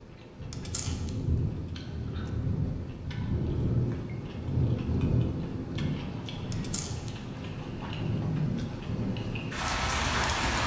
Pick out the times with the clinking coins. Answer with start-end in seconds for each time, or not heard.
0.5-2.3, 6.5-7.2.